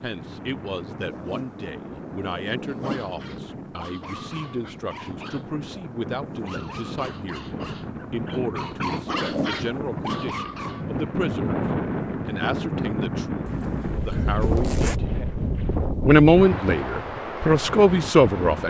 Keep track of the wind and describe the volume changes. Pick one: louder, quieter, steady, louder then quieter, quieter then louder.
louder.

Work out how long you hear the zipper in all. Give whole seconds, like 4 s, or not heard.
5 s.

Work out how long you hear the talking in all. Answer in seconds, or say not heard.
17 s.